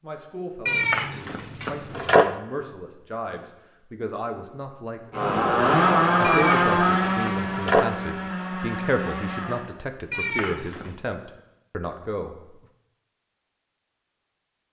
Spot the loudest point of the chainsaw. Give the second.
6 s.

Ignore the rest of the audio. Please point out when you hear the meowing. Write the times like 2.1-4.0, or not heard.
0.7-2.4, 6.2-8.0, 10.1-10.9.